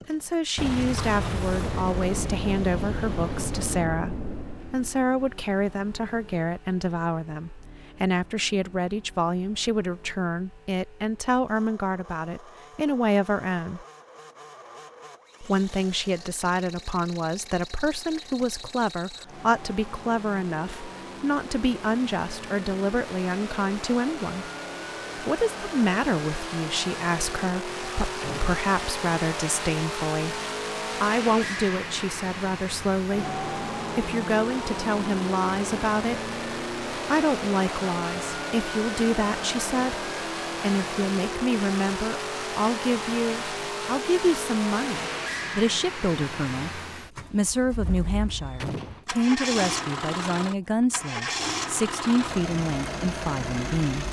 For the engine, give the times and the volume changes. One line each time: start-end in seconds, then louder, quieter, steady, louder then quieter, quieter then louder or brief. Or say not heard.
0.0-54.0 louder.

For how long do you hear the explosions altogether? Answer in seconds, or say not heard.
5 s.